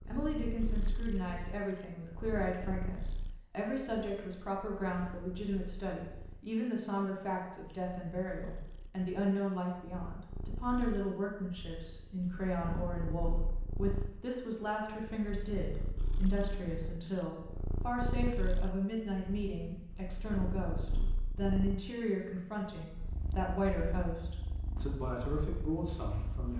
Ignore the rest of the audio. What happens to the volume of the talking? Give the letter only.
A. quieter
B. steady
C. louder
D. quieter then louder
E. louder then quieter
B.